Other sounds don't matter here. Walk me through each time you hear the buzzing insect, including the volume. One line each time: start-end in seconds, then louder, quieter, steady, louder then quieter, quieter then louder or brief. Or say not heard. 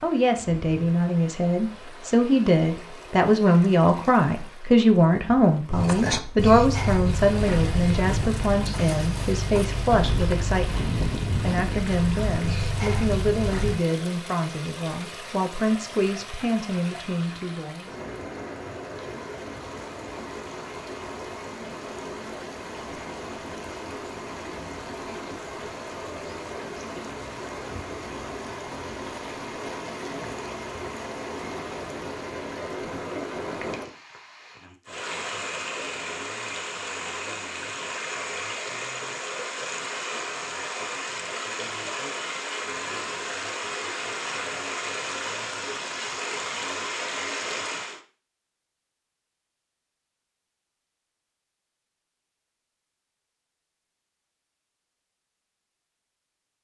not heard.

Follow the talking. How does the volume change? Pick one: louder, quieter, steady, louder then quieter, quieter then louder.
quieter.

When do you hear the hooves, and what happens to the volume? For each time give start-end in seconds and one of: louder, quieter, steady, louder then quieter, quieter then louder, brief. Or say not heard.
5.7-13.8 steady.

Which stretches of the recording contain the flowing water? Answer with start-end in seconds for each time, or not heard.
0.0-48.0.